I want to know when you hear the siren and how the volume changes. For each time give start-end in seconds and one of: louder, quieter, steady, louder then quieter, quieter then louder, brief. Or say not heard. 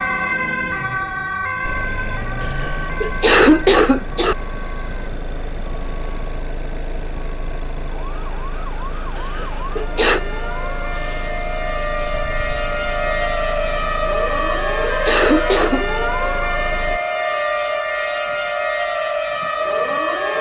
0.0-20.3 quieter then louder.